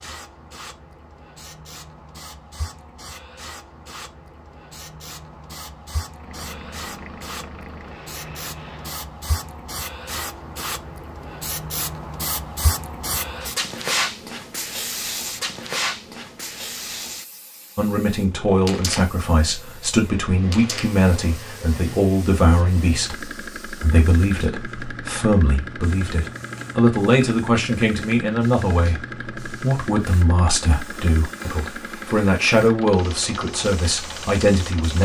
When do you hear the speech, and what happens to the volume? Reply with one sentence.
You can hear the speech from 17.8 to 35.0 s, at a steady volume.